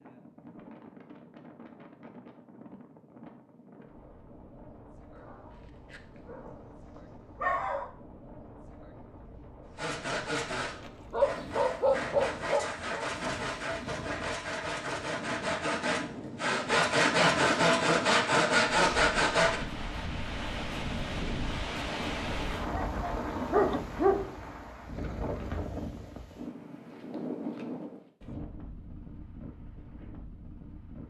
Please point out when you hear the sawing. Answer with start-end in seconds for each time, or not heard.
9.8-19.6.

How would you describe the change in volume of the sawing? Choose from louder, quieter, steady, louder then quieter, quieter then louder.
louder.